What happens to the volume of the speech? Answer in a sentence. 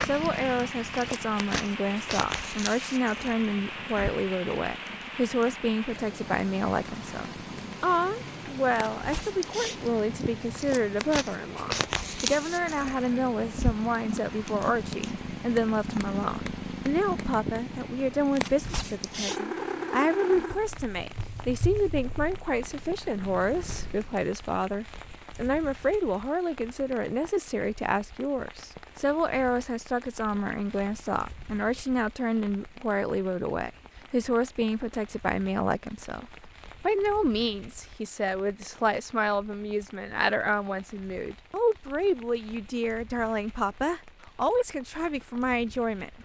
The loudness of the speech stays about the same.